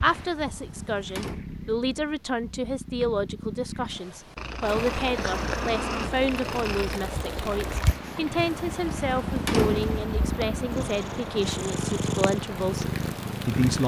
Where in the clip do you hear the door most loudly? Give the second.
10 s.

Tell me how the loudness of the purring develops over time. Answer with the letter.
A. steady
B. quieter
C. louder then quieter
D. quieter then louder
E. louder
E.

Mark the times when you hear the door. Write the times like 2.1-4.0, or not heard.
0.1-1.4, 8.3-10.1.